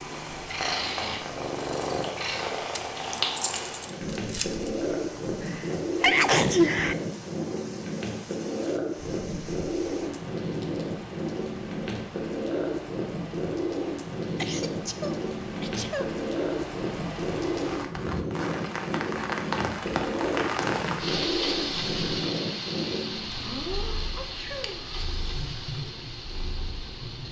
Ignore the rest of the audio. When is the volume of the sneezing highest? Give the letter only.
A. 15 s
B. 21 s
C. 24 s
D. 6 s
D.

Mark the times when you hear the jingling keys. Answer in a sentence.
You can hear the jingling keys from 2.8 to 4.7 s.